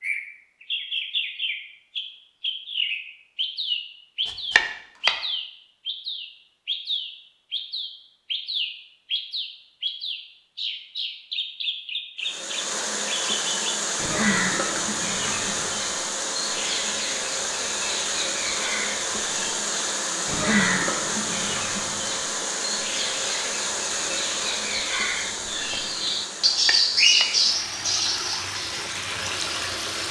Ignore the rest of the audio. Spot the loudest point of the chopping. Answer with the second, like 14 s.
5 s.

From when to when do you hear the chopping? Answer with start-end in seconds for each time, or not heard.
4.2-5.2, 26.6-27.3.